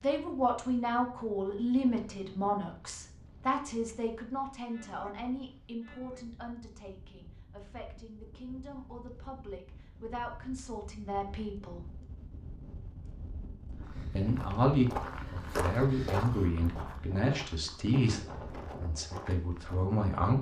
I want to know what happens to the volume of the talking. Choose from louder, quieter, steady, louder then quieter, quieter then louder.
quieter then louder.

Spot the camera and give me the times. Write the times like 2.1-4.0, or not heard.
not heard.